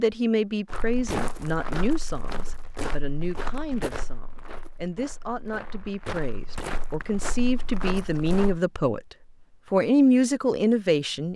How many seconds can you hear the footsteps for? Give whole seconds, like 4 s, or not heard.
8 s.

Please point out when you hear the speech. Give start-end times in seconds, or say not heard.
0.0-9.0, 9.7-11.3.